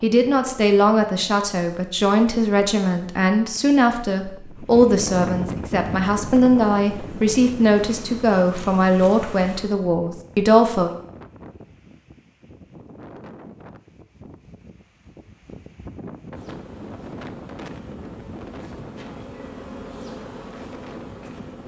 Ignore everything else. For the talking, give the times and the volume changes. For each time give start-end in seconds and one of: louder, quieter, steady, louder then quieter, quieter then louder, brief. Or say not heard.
0.0-10.9 steady.